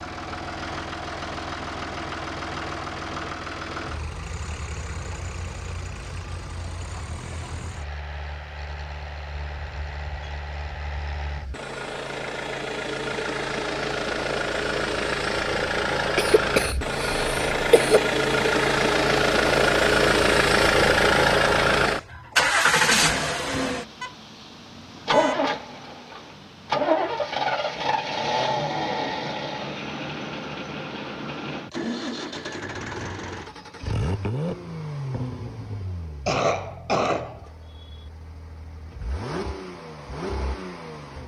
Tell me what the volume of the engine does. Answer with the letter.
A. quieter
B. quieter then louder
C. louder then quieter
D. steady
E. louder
C.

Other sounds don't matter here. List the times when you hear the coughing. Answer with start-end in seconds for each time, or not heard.
16.1-18.0, 36.2-38.0.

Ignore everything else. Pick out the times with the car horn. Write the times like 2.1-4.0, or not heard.
24.0-25.4.